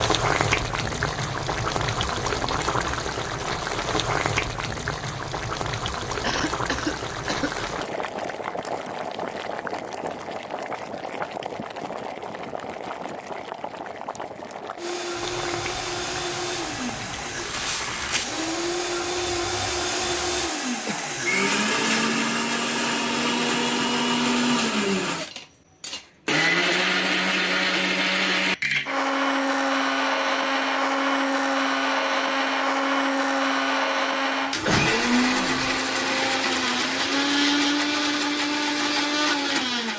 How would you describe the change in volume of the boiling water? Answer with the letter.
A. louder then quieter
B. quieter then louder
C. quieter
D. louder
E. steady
C.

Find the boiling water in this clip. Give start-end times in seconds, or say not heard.
0.0-20.5.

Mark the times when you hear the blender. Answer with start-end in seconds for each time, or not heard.
14.8-39.9.